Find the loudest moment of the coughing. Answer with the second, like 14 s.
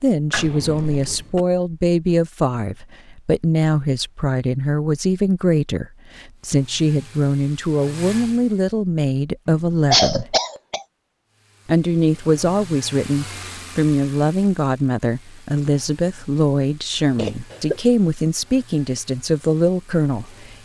10 s.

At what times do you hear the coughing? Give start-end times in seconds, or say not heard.
0.3-1.4, 9.5-10.8, 17.1-17.8.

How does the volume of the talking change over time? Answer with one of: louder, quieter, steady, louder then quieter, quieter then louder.
steady.